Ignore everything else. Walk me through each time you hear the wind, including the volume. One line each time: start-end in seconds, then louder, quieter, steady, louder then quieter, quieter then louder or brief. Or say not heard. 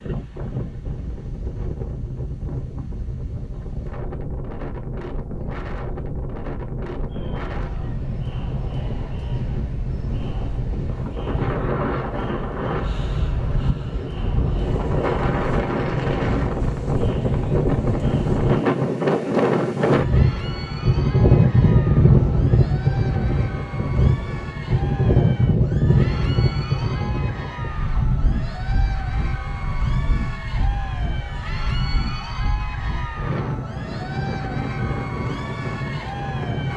0.0-36.7 louder then quieter.